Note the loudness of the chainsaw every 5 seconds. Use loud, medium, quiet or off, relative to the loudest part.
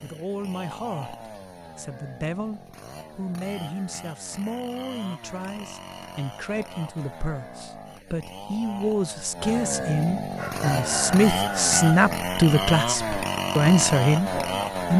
quiet, medium, loud.